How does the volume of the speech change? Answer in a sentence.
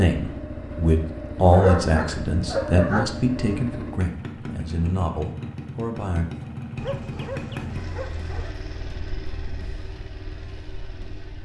The loudness of the speech goes down.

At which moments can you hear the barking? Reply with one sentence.
You can hear the barking from 1.5 to 3.1 s and from 6.8 to 8.6 s.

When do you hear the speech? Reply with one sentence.
You can hear the speech from 0.0 to 6.3 s.